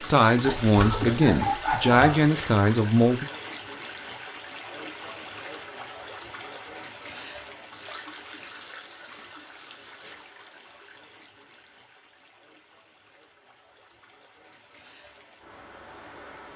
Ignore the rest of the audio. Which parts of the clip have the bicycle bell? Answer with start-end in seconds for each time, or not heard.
not heard.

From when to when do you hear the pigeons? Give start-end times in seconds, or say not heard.
0.4-2.3.